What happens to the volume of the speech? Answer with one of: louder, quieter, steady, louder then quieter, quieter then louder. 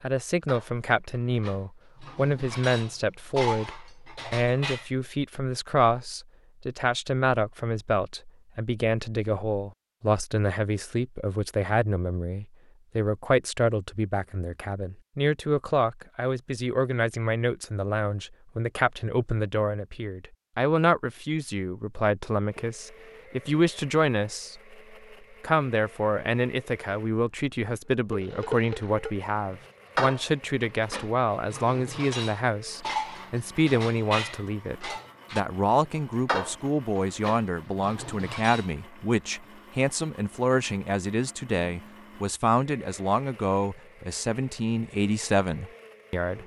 steady.